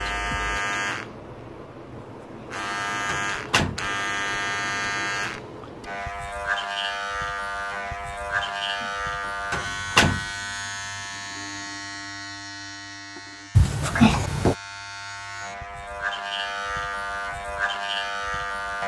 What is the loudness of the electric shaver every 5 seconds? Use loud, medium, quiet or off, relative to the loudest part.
loud, loud, medium, loud.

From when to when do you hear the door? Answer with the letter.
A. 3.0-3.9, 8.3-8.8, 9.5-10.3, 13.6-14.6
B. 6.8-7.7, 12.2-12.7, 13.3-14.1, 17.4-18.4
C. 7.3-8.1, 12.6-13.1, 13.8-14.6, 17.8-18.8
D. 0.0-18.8
A.